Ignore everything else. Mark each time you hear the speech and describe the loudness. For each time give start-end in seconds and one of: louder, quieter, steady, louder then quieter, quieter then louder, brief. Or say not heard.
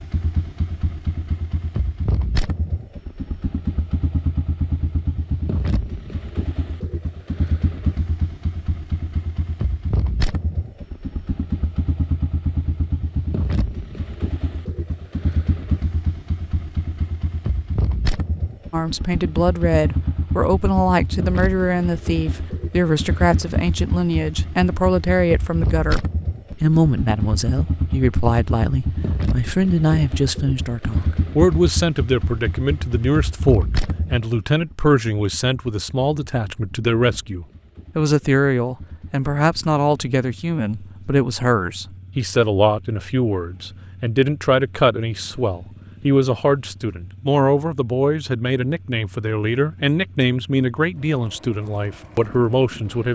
18.7-53.1 steady.